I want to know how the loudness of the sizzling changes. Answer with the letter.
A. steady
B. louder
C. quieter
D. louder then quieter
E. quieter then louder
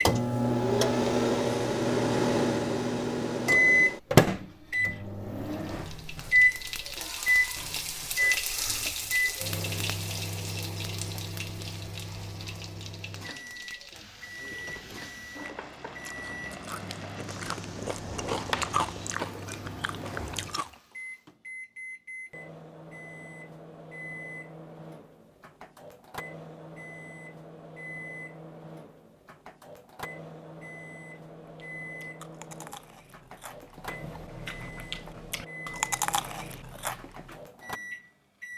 C.